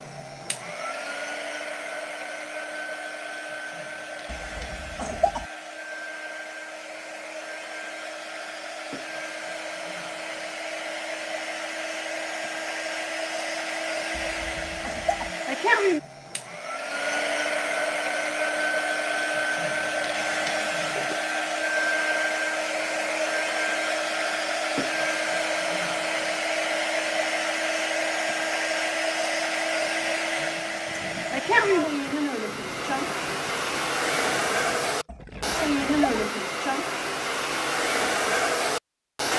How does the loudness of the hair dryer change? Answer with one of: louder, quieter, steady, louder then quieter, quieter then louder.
louder.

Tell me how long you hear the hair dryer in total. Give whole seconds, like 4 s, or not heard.
39 s.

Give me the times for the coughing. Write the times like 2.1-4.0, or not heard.
4.2-5.5, 14.1-15.3, 35.0-36.2.